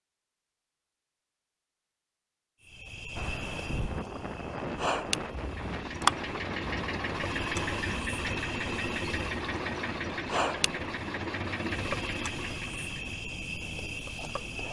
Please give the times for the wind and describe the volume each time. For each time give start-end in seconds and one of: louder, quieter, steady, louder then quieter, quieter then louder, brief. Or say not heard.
3.1-14.6 quieter.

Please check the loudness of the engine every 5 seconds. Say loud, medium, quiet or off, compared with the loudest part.
off, loud, loud.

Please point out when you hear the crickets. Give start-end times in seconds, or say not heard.
2.6-14.6.